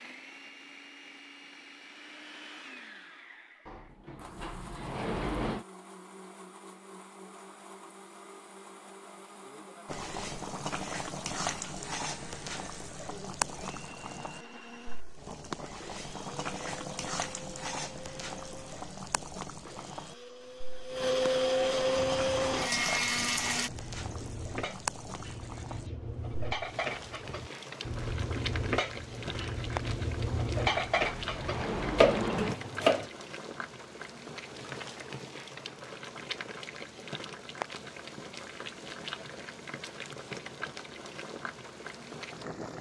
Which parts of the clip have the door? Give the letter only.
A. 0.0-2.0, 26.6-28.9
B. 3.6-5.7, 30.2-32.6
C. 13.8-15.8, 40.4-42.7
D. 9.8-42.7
B.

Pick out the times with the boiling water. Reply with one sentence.
You can hear the boiling water from 9.8 to 42.7 s.